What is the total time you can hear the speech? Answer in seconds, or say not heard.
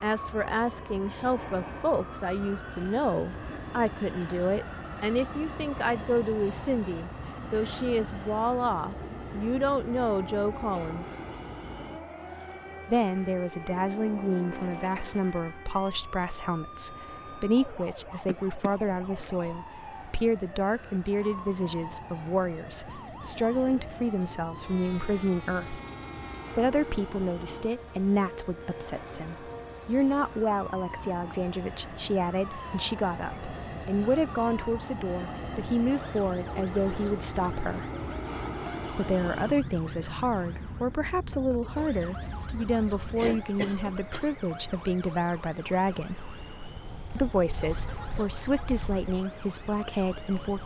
46 s.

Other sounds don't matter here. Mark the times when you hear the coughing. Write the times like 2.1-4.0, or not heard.
18.2-18.7, 43.1-44.4.